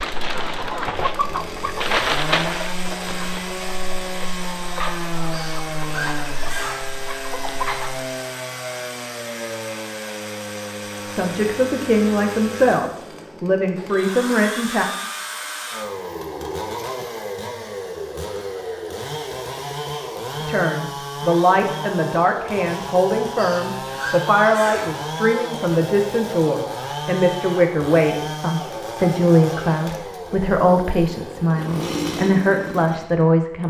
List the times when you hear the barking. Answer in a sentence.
The barking can't be heard in this clip.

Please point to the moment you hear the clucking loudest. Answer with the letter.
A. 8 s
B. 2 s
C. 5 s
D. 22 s
B.